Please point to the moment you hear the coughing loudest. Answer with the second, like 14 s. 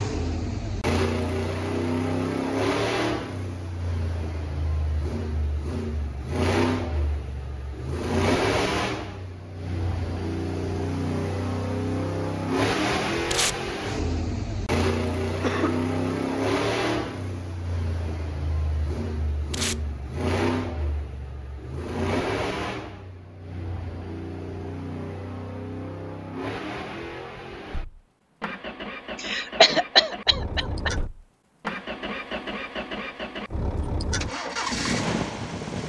30 s.